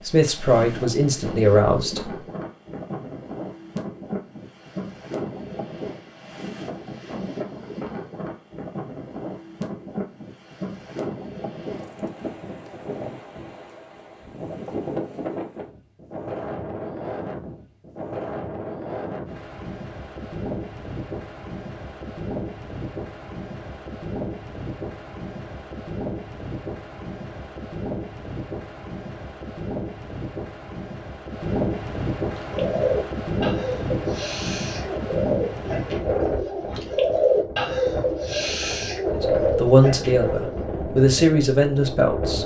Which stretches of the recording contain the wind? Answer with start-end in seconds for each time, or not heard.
0.0-42.4.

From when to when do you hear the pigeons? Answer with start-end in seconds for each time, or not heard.
32.3-40.8.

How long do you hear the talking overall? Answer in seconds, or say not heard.
5 s.